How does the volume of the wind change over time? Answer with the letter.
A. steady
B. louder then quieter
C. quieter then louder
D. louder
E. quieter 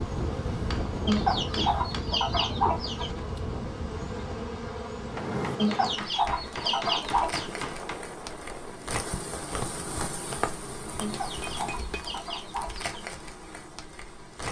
E.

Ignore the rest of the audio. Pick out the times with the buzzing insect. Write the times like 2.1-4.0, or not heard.
0.0-14.4.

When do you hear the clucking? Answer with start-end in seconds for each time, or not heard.
1.1-3.1, 5.5-7.5, 11.0-13.0.